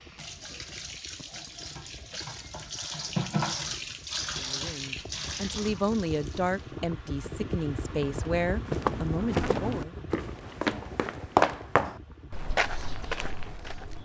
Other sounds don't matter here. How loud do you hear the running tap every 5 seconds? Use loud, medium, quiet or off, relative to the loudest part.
loud, medium, off.